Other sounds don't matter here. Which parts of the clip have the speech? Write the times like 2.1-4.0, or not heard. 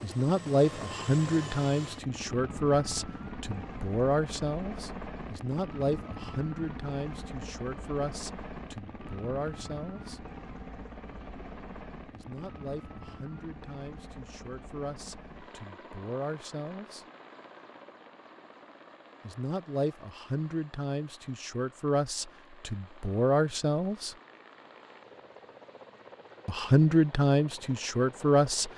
0.0-10.2, 12.1-17.1, 19.2-24.1, 26.4-28.7.